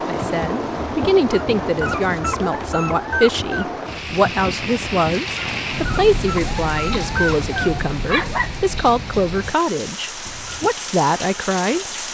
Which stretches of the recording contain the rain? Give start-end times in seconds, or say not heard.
0.0-12.0.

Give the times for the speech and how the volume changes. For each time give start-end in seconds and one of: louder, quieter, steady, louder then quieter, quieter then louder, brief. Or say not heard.
0.1-11.8 steady.